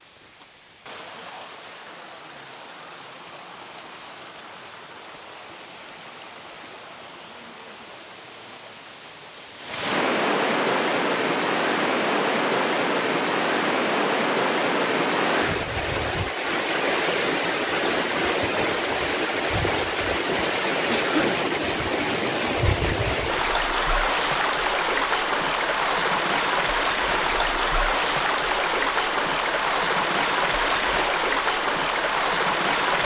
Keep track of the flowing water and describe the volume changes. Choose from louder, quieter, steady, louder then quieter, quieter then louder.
louder.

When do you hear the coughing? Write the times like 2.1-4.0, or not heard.
20.9-21.4.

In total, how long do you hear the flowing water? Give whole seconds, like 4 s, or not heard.
33 s.